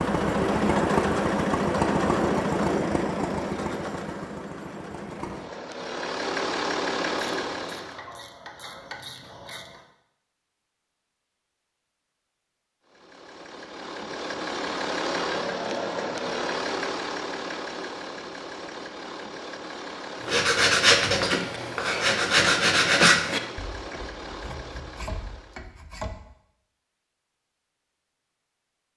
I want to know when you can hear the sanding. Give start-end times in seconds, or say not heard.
20.2-26.1.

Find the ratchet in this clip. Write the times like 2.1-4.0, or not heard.
7.2-9.8.